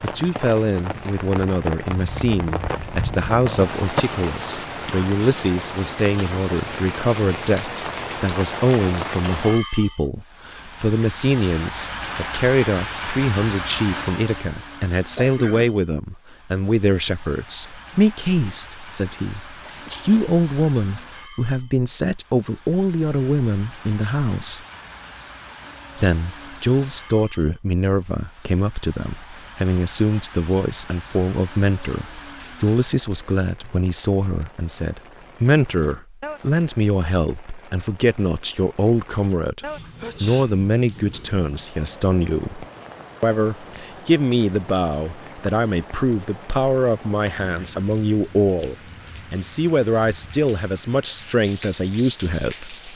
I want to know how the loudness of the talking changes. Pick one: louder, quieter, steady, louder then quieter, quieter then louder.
steady.